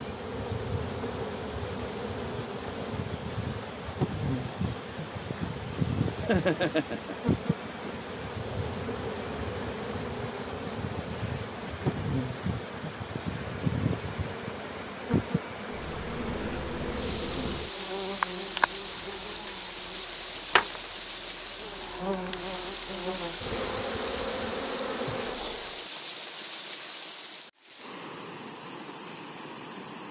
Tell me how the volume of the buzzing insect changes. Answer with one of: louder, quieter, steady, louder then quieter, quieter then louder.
steady.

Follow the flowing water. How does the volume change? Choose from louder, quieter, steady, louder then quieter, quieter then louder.
steady.